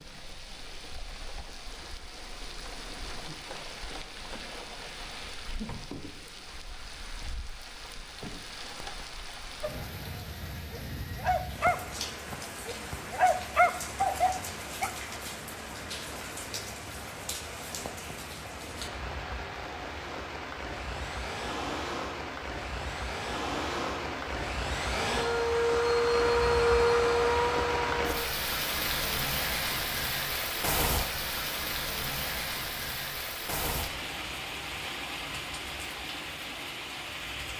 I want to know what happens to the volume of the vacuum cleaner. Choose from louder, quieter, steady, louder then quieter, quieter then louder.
louder.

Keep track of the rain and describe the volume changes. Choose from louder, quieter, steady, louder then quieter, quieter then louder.
louder.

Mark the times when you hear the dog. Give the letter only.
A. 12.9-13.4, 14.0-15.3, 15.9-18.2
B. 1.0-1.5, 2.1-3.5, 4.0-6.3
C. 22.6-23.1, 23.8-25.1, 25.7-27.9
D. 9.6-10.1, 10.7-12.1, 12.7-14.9
D.